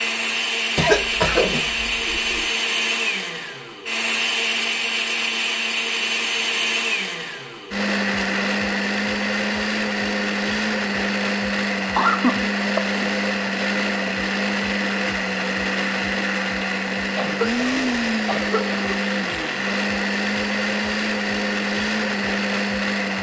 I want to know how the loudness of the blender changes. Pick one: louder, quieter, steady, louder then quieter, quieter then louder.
steady.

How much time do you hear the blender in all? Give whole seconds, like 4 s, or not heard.
23 s.